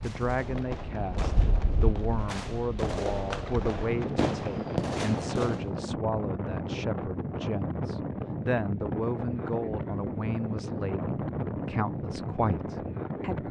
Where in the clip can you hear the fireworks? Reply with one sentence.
The fireworks can be heard from 0.0 to 5.7 s.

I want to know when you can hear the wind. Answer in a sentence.
The wind can be heard from 0.0 to 13.4 s.